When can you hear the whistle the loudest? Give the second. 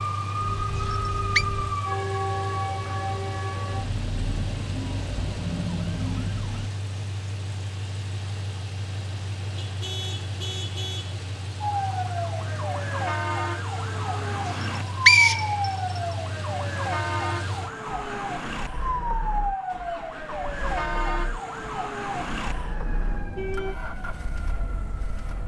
15 s.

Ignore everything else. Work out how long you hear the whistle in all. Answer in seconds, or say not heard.
2 s.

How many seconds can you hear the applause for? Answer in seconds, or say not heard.
not heard.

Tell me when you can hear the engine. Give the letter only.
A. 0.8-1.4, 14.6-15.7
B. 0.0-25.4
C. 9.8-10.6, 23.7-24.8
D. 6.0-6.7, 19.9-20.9
B.